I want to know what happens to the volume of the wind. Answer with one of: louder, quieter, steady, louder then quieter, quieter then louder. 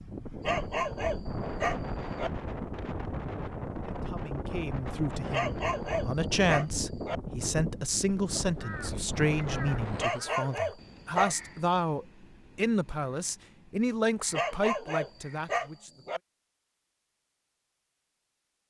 steady.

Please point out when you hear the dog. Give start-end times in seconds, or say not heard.
0.4-2.3, 5.3-7.2, 9.9-11.3, 14.3-16.2.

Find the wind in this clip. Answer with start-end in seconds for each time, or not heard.
0.0-10.1.